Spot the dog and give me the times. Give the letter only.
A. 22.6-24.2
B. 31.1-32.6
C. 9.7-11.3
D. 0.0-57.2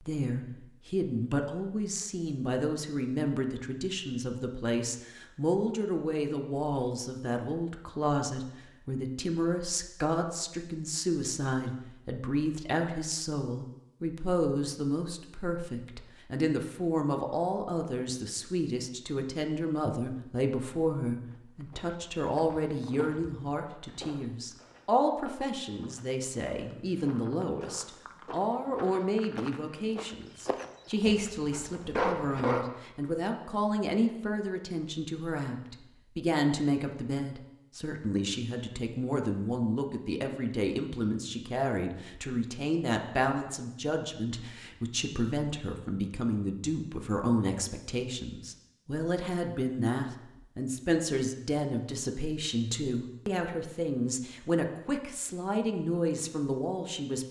B.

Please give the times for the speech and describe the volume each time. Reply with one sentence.
You can hear the speech from 0.0 to 57.2 s, at a steady volume.